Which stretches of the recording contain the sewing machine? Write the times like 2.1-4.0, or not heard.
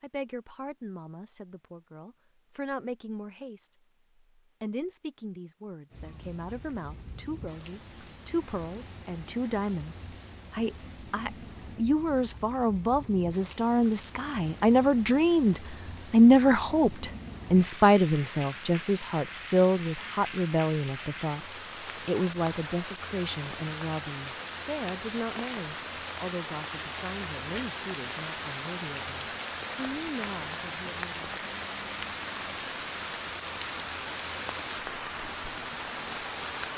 not heard.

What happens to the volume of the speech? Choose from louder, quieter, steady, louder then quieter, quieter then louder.
louder then quieter.